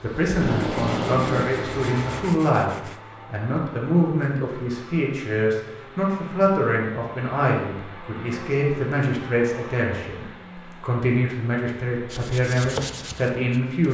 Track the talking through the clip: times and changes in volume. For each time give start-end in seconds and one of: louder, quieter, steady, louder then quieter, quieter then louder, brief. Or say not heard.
0.0-2.7 brief
3.3-13.8 steady.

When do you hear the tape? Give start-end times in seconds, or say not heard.
0.2-1.5.